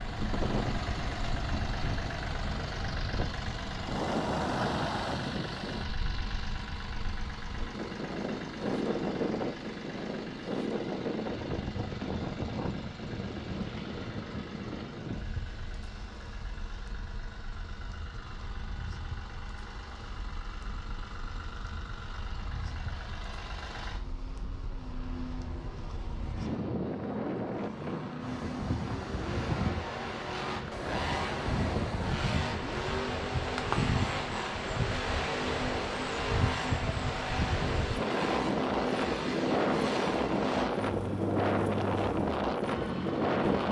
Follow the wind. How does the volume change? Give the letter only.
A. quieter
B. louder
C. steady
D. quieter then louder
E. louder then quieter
D.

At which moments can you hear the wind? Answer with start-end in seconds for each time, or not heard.
0.0-43.6.